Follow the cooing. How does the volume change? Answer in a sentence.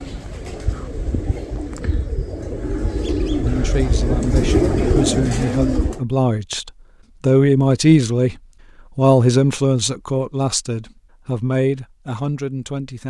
The loudness of the cooing goes up.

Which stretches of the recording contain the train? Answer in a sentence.
You can't hear the train here.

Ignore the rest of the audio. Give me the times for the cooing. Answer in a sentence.
The cooing can be heard from 0.0 to 6.0 s.